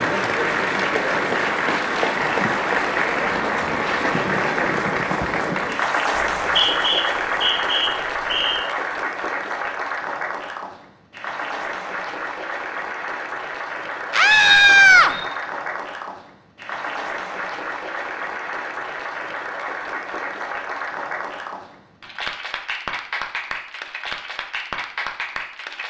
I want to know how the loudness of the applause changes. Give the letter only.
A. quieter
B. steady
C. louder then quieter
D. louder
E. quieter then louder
A.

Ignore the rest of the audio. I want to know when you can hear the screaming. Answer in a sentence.
The screaming can be heard from 14.1 to 15.1 s.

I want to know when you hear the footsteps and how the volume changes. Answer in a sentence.
The footsteps can't be heard in this clip.